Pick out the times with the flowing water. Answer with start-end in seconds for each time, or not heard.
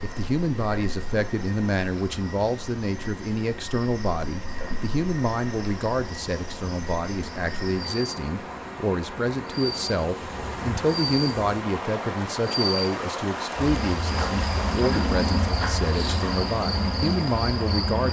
0.0-18.0.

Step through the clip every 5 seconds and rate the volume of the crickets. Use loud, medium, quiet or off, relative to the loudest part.
quiet, medium, loud, loud.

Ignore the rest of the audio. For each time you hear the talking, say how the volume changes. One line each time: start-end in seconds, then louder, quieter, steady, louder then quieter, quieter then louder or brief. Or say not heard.
0.0-18.0 steady.